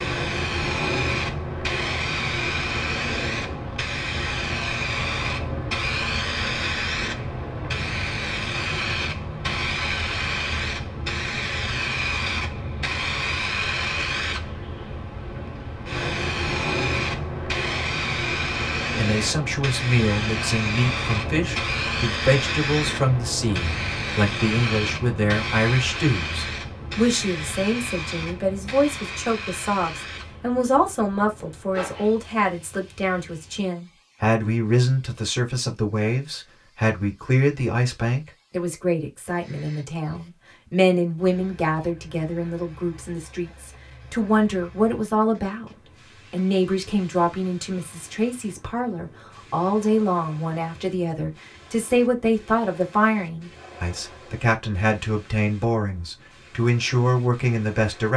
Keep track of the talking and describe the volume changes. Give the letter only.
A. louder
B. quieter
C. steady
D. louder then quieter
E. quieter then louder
C.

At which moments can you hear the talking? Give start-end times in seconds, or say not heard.
18.9-45.7, 46.3-58.1.